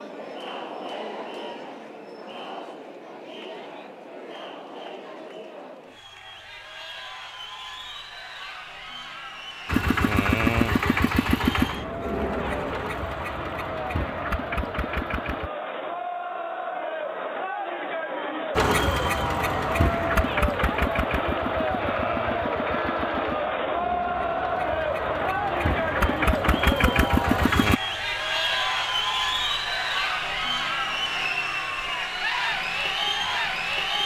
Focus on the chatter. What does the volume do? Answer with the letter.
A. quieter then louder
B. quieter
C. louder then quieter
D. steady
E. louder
E.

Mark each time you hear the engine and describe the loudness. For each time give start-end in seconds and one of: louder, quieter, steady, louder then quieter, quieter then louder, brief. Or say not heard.
9.7-15.5 quieter
18.6-27.8 quieter then louder.